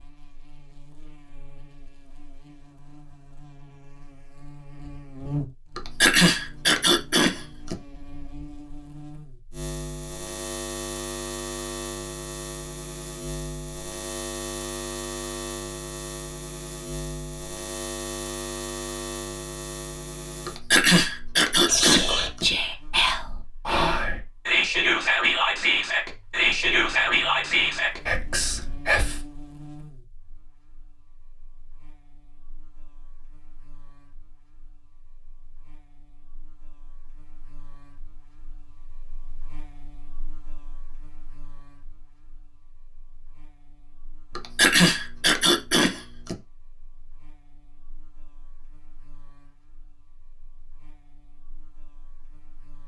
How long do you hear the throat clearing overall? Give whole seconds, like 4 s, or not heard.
6 s.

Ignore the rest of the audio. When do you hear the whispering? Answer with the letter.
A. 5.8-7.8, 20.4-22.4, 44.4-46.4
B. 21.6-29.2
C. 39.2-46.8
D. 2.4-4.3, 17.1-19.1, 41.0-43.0
B.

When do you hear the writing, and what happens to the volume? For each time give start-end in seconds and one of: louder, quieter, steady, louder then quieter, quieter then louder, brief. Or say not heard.
not heard.